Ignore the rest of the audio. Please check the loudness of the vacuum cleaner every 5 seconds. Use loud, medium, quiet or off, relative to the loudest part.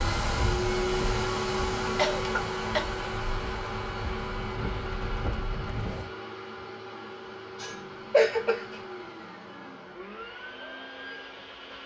loud, medium, medium.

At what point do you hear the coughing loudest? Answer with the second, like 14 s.
8 s.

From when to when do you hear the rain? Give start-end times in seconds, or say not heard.
0.0-6.1.